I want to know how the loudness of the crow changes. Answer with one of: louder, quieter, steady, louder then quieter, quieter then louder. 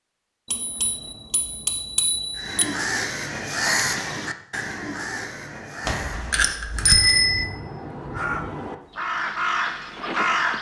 quieter then louder.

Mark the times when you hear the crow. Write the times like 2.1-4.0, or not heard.
2.4-10.5.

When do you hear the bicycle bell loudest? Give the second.
7 s.